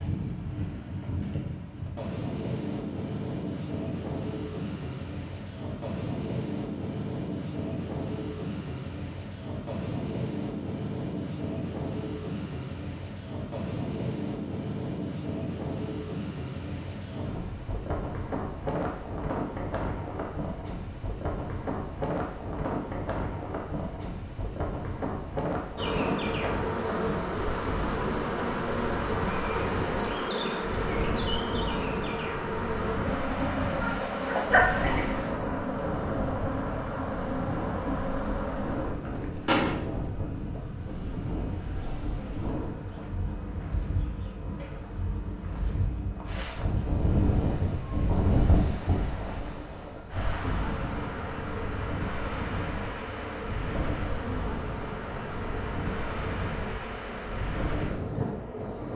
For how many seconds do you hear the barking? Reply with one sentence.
You can hear the barking for 2 seconds altogether.